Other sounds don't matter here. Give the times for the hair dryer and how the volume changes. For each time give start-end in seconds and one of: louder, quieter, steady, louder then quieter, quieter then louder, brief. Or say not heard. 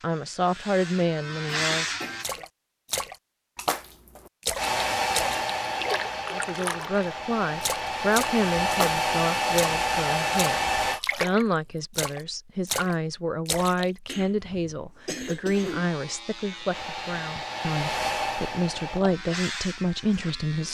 4.5-11.0 quieter then louder
16.6-19.1 brief.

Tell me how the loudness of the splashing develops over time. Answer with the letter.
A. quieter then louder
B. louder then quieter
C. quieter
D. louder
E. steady
E.